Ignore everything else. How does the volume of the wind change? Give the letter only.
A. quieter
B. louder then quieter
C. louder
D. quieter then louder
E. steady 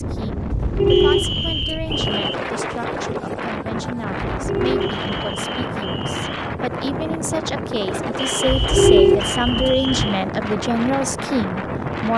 E.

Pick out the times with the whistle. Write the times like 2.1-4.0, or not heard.
0.8-2.4, 4.8-6.5, 8.2-10.1.